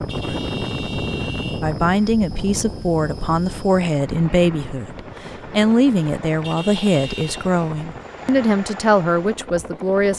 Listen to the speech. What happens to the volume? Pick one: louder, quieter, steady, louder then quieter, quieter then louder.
steady.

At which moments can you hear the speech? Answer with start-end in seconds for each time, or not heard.
1.6-10.1.